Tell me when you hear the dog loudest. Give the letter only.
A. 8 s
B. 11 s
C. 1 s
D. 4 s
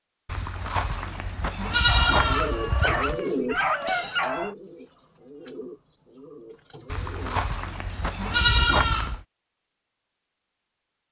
D.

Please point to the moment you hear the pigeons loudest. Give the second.
3 s.